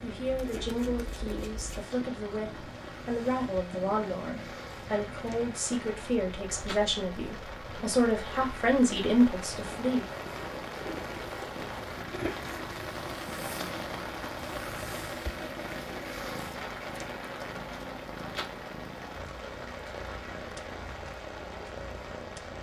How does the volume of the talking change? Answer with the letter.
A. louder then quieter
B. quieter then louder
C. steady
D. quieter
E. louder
E.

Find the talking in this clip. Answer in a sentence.
You can hear the talking from 0.0 to 10.1 s.